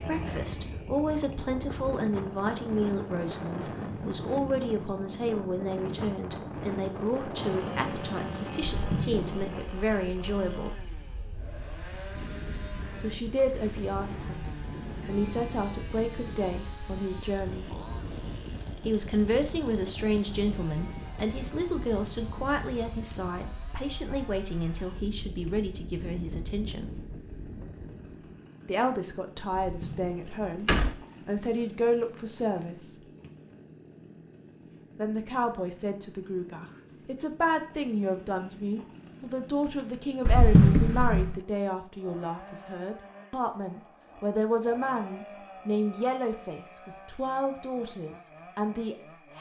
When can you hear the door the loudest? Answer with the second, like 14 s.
41 s.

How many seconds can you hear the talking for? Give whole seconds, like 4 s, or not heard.
42 s.